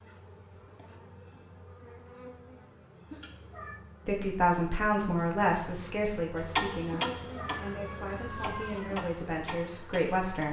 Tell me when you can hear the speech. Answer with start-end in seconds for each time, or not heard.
4.0-10.4.